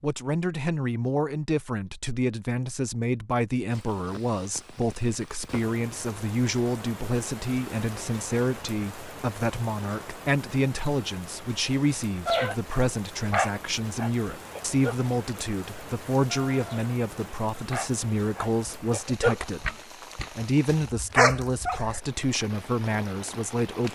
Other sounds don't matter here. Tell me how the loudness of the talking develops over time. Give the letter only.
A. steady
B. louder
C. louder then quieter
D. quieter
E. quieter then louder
A.